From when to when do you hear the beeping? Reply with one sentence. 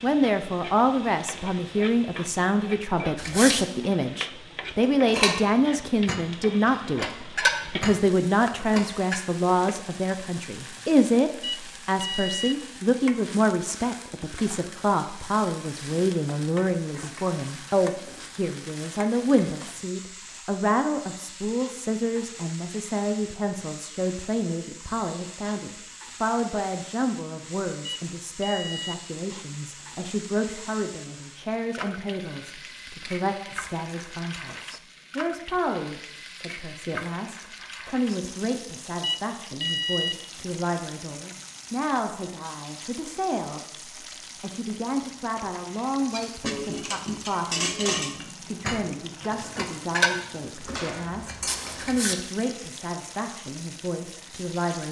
The beeping can be heard from 11.4 to 12.6 s, from 27.9 to 29.0 s and from 39.0 to 40.2 s.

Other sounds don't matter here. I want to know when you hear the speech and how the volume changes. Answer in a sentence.
You can hear the speech from 0.0 to 54.8 s, getting quieter.